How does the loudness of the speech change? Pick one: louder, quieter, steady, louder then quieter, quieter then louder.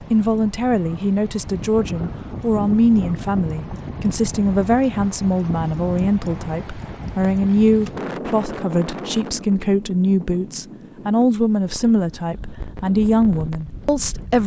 steady.